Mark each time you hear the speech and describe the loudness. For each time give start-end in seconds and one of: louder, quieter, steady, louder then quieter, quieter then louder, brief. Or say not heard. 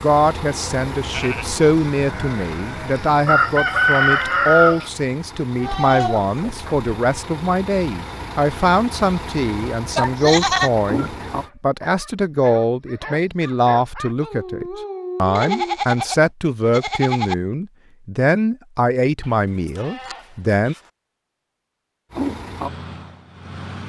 0.0-20.8 steady.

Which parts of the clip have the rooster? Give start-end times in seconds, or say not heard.
3.0-4.9.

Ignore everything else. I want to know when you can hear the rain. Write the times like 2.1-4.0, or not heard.
not heard.